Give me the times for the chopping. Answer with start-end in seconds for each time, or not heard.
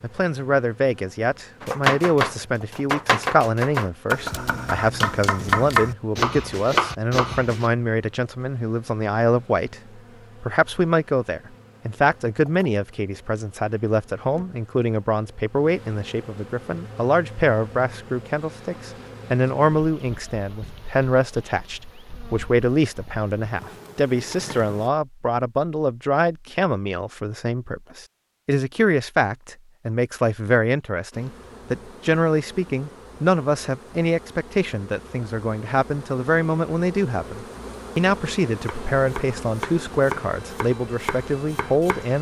1.6-7.7, 38.5-42.1.